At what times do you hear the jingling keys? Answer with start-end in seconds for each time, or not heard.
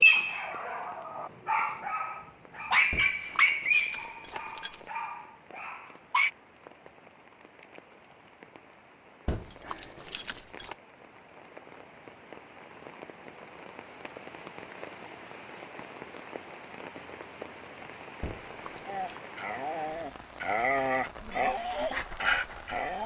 2.9-4.8, 9.2-10.8, 18.2-19.2.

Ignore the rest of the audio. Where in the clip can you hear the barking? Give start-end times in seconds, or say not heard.
0.0-6.3, 18.9-23.0.